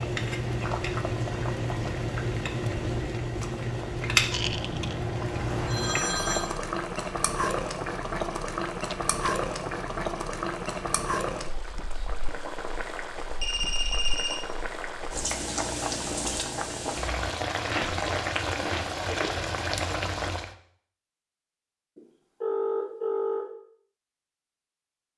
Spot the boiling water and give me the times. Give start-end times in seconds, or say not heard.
0.0-20.6.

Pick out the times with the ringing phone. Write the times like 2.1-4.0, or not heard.
4.4-6.5, 13.4-14.3, 21.9-23.4.